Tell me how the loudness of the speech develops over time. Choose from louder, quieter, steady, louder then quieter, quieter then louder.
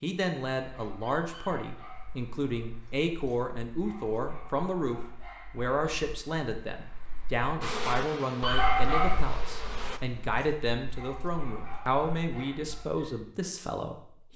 steady.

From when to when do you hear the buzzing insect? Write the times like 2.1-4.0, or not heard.
7.6-10.0.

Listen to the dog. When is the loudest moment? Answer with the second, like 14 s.
9 s.